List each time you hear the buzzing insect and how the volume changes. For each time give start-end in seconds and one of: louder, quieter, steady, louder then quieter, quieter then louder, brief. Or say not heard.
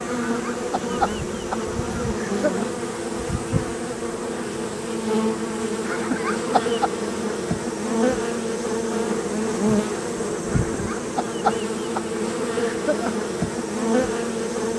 0.0-14.7 steady.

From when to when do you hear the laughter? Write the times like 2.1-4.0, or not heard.
0.2-2.7, 5.8-6.9, 10.4-13.2.